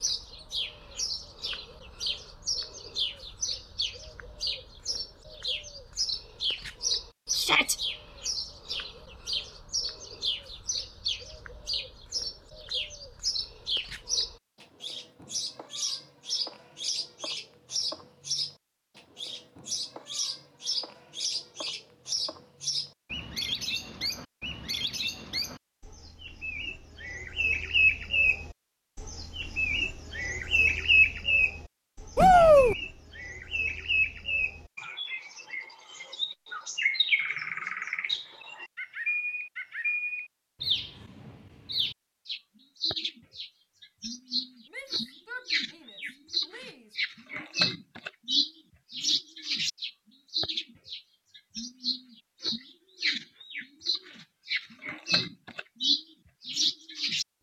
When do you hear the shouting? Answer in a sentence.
The shouting can be heard from 7.3 to 7.8 s, from 32.1 to 32.8 s and from 44.7 to 47.0 s.